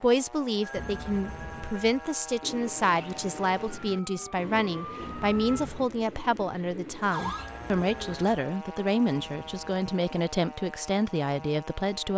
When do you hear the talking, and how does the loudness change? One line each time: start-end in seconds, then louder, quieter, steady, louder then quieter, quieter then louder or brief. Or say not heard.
0.0-12.1 steady.